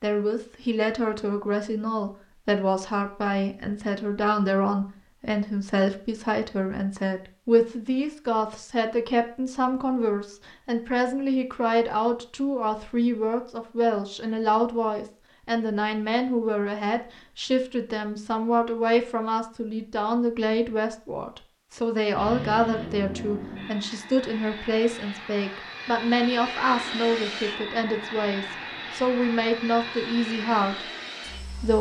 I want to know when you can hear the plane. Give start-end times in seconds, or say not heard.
22.1-31.7.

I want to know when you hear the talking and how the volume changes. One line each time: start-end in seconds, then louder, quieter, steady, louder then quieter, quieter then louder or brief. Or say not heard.
0.0-31.7 steady.